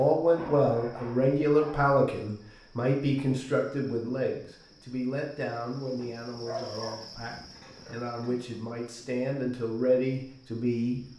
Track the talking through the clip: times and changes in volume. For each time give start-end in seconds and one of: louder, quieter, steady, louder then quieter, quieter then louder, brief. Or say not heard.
0.0-11.1 quieter then louder.